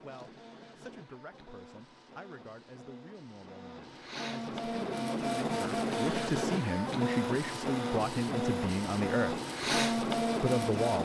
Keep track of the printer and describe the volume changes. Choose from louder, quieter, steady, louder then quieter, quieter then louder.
louder.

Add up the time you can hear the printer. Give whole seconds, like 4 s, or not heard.
11 s.